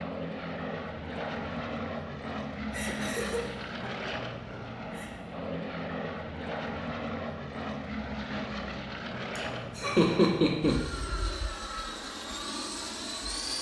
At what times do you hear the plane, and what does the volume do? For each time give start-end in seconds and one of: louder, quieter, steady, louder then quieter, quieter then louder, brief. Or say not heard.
0.0-13.5 steady.